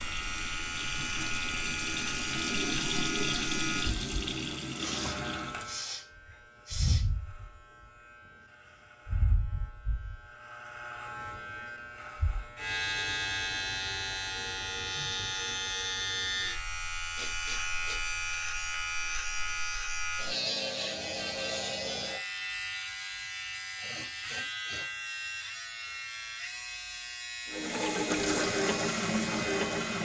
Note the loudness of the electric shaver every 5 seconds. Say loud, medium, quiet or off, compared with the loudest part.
loud, medium, loud, loud, loud, medium.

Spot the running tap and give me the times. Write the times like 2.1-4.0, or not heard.
0.0-5.7, 27.4-29.9.